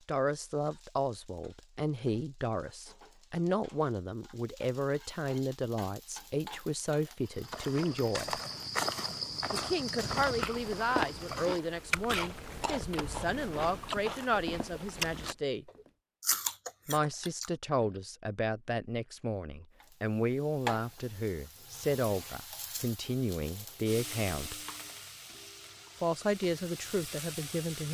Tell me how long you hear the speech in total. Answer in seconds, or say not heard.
24 s.